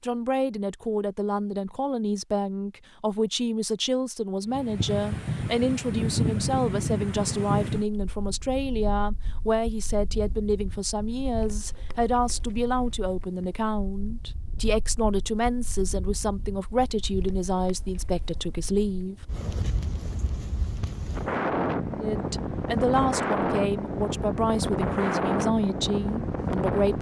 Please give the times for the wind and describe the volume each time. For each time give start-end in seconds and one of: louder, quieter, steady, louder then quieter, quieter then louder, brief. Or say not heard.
4.5-26.9 quieter then louder.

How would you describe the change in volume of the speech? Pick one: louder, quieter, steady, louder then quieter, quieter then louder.
steady.